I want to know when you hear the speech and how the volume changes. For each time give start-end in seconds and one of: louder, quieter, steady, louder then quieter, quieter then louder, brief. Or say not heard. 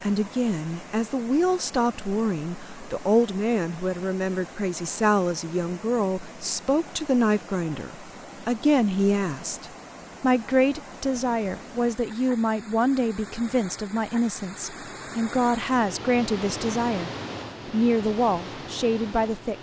0.0-19.5 steady.